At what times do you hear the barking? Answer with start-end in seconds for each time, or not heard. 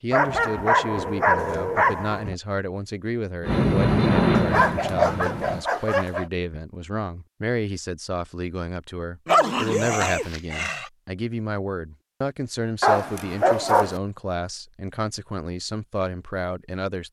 0.1-2.4, 4.3-6.2, 9.2-10.9, 12.8-14.0.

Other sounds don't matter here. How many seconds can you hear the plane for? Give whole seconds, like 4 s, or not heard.
2 s.